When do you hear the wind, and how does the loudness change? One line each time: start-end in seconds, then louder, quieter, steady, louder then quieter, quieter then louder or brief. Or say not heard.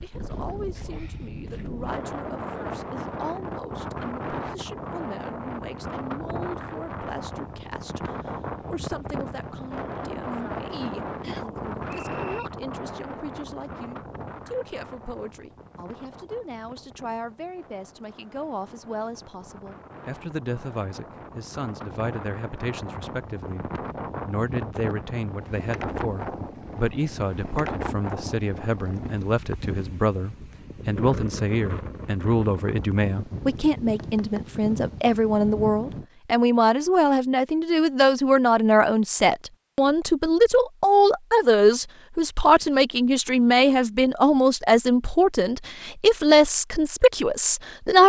0.0-36.0 quieter then louder.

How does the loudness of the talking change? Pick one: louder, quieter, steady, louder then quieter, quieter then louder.
louder.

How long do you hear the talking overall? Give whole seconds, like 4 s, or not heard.
48 s.